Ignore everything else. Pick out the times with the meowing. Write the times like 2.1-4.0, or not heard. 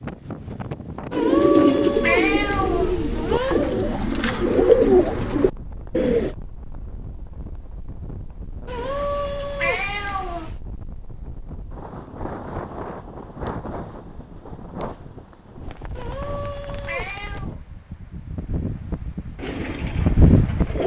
1.1-3.6, 8.7-10.6, 15.9-17.5.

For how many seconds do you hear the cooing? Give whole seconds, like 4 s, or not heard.
7 s.